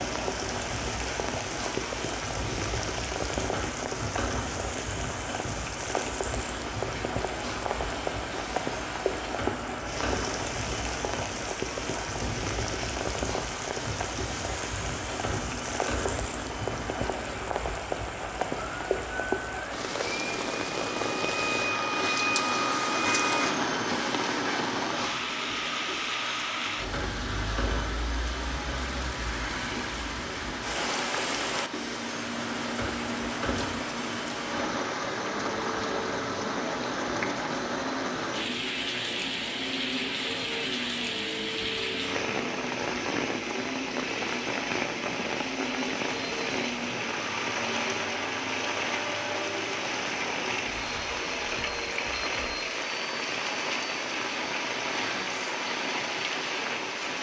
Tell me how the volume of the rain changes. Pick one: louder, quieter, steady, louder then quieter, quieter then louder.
steady.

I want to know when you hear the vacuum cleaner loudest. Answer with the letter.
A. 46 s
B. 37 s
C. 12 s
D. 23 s
D.